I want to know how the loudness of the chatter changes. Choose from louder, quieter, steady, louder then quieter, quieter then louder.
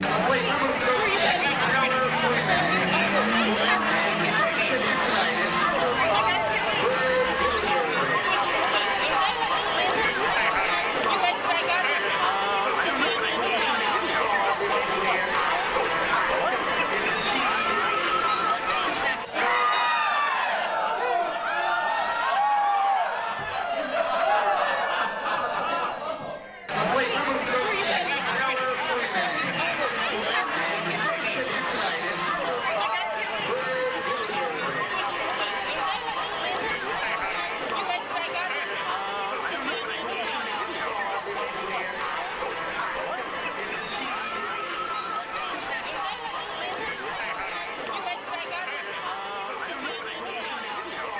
quieter.